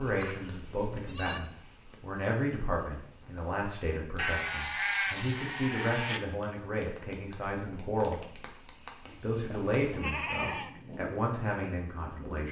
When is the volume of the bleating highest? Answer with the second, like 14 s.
5 s.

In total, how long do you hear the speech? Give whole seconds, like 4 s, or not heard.
12 s.